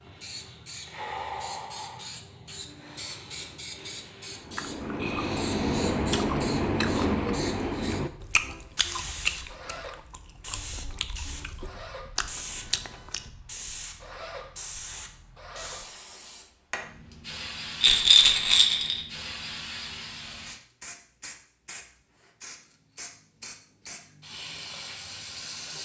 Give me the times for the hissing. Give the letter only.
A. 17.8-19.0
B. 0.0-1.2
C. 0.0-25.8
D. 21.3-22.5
C.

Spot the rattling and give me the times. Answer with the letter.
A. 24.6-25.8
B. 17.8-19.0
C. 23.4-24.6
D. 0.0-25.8
B.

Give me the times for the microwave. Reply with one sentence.
You can't hear the microwave here.